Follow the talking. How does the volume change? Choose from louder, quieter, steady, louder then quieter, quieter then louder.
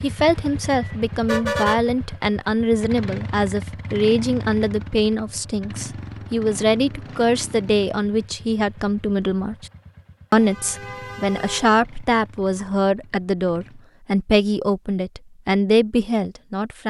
steady.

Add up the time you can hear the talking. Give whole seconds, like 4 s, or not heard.
16 s.